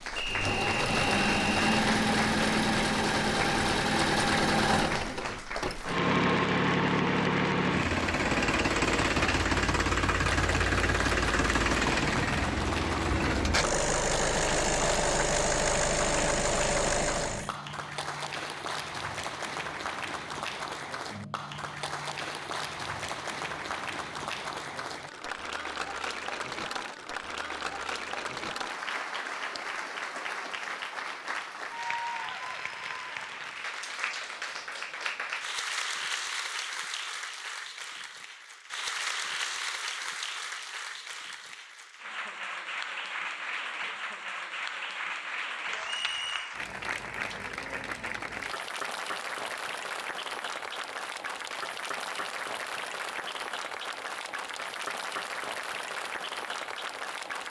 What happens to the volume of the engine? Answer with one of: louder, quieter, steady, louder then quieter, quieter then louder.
steady.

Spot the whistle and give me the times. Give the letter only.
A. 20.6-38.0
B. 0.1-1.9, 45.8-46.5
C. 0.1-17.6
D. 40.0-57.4
B.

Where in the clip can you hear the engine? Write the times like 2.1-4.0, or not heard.
0.1-17.6.